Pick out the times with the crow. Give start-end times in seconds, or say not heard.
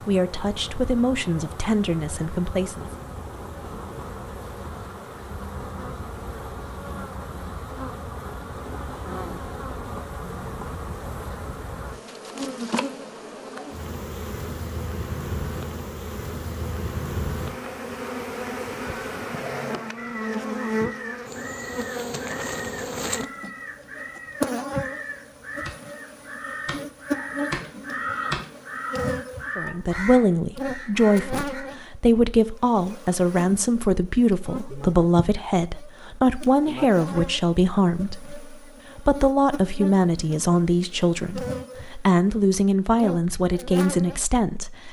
19.9-31.6.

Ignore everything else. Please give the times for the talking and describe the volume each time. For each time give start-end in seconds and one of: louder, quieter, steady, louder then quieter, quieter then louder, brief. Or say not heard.
0.0-2.9 brief
29.6-44.8 steady.